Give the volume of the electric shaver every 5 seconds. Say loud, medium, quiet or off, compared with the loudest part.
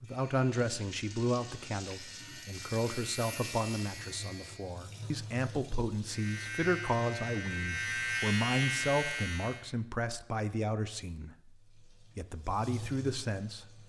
quiet, loud, off.